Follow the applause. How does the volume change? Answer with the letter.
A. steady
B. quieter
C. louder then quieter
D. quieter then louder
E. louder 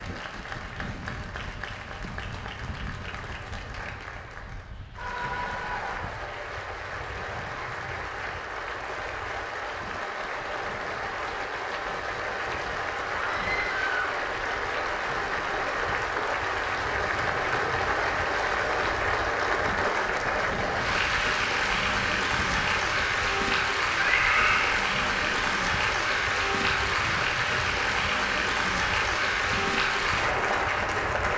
E.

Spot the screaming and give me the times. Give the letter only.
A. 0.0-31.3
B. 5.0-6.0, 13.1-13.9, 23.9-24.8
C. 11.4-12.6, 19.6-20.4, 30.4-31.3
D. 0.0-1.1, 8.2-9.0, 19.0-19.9
B.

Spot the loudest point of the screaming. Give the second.
24 s.